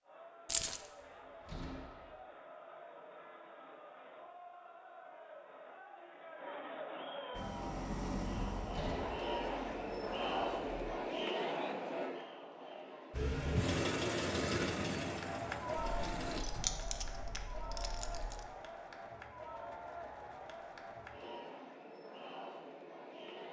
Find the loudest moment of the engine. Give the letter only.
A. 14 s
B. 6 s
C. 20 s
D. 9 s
A.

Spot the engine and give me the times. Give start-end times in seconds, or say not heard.
7.3-10.9, 13.1-16.4.